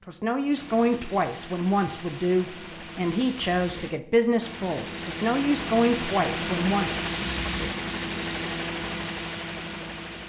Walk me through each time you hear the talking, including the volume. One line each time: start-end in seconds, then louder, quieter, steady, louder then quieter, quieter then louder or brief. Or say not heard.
0.1-7.1 steady.